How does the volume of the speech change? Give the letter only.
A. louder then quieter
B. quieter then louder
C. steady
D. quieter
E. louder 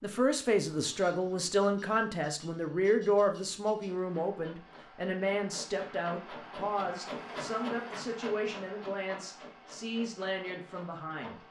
D.